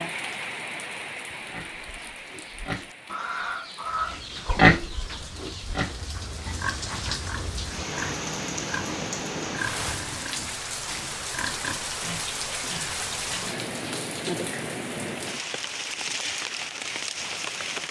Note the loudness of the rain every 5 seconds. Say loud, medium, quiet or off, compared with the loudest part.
medium, loud, loud, loud.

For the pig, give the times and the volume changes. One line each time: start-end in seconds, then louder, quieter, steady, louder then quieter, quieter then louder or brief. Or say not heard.
1.5-13.6 louder then quieter.